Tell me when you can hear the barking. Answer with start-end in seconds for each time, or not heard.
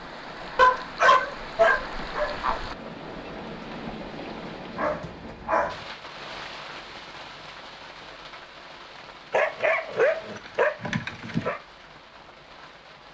0.6-2.6, 4.8-5.8, 9.3-11.6.